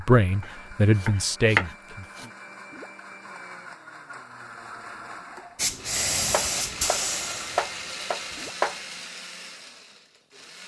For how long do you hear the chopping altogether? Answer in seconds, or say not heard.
4 s.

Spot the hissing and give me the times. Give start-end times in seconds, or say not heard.
5.5-8.6.